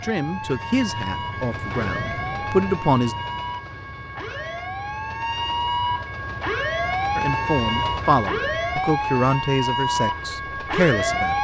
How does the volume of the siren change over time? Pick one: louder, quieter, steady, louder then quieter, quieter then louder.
louder.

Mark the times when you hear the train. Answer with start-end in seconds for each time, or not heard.
0.0-11.3.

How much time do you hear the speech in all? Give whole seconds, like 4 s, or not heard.
7 s.